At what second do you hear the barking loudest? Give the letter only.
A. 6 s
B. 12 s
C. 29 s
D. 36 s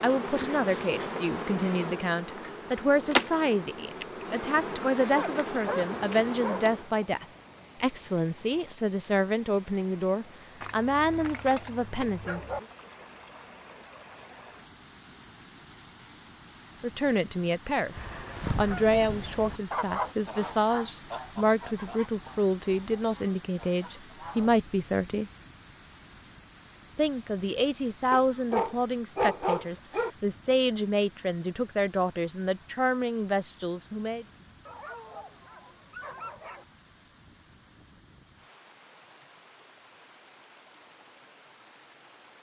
C.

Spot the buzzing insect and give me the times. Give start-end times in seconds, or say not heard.
0.0-7.0.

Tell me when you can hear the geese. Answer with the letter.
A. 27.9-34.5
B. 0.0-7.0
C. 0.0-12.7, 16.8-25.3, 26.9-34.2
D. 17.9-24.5
D.